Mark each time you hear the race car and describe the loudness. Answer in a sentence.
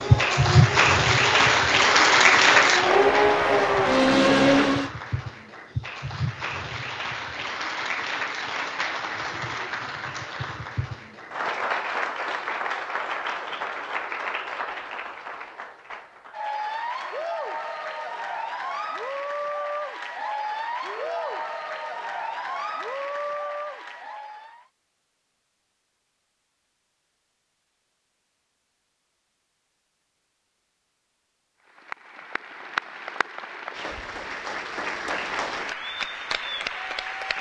You can hear the race car from 0.0 to 4.9 s, getting louder.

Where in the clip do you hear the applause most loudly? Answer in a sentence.
The volume of the applause peaks at 2 seconds.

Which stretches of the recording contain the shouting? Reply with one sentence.
The shouting can be heard from 20.8 to 21.5 s.